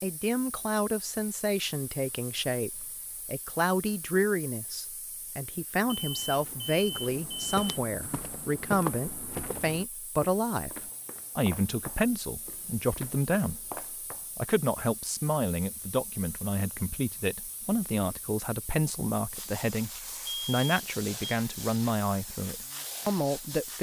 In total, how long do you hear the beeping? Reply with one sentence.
The beeping can be heard for 3 seconds in total.